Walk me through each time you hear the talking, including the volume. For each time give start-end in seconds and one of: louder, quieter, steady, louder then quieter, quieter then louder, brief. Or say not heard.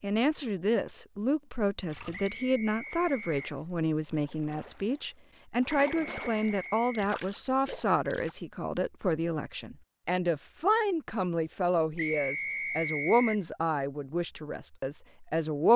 0.0-15.7 steady.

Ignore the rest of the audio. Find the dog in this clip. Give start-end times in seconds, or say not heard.
not heard.